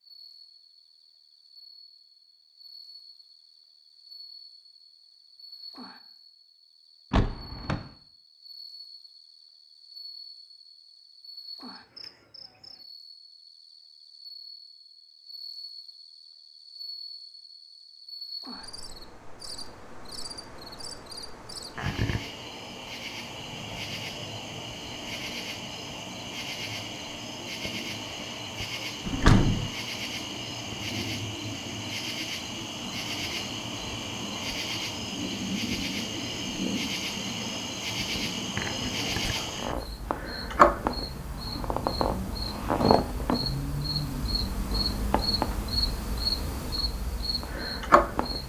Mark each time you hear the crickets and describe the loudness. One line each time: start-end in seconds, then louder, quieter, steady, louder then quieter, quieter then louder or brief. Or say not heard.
0.0-48.4 louder.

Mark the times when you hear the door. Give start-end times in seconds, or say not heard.
7.1-7.8, 29.1-29.7.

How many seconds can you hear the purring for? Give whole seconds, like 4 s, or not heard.
not heard.